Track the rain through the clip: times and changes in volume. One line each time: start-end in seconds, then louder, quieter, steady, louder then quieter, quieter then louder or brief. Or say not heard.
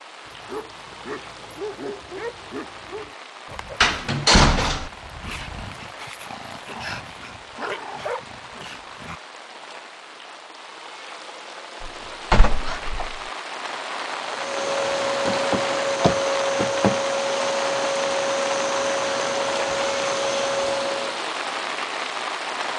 0.0-22.7 louder.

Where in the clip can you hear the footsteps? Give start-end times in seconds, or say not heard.
not heard.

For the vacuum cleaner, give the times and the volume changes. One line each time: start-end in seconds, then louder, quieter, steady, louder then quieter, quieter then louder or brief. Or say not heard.
14.2-21.2 steady.